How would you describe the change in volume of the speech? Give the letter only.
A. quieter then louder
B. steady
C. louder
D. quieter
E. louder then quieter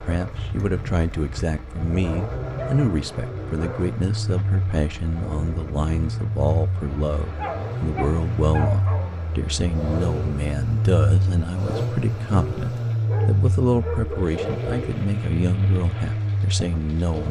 B.